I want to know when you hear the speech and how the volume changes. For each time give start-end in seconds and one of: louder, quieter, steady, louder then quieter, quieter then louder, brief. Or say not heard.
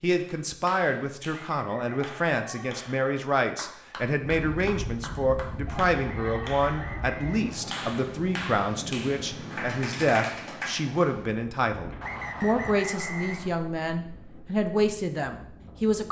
0.0-16.0 steady.